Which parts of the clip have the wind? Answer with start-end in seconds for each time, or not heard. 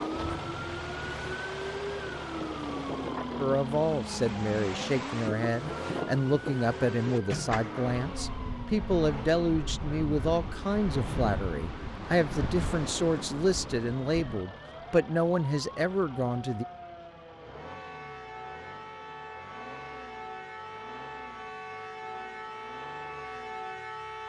0.0-14.4.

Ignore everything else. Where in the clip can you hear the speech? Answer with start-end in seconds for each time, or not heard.
3.4-16.6.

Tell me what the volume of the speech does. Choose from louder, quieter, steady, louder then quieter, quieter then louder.
steady.